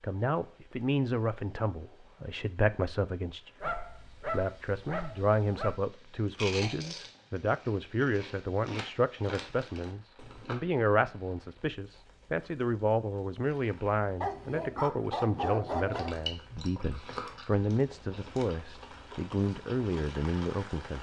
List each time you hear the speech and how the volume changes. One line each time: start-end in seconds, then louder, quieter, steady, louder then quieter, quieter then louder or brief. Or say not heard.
0.0-20.9 steady.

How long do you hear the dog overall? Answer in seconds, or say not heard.
4 s.